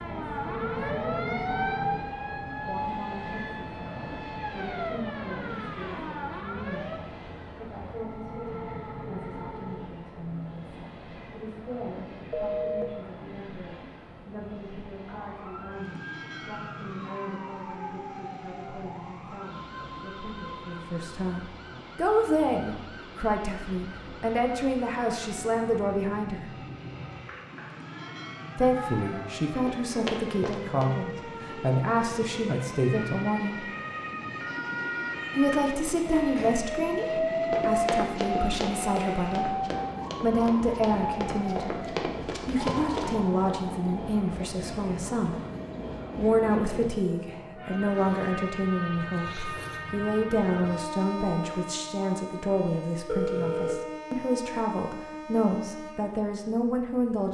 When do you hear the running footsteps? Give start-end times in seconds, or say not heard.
29.6-31.0, 37.5-43.2.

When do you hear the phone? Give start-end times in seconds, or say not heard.
12.3-12.8, 53.0-53.8.